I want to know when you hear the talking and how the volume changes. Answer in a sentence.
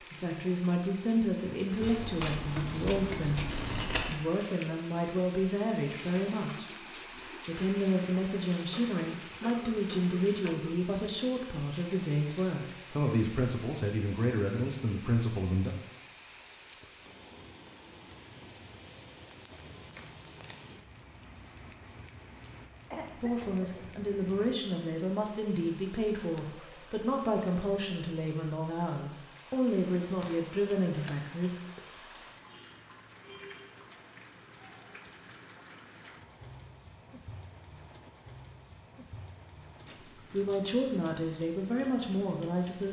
The talking can be heard from 0.1 to 15.8 s, at a steady volume; from 23.2 to 31.6 s, at a steady volume; and briefly from 40.3 to 42.8 s.